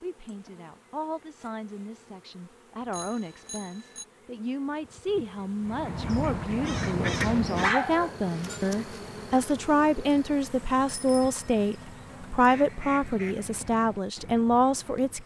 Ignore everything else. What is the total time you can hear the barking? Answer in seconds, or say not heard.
2 s.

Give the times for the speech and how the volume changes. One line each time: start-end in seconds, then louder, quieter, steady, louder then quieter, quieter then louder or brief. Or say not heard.
0.0-15.2 louder.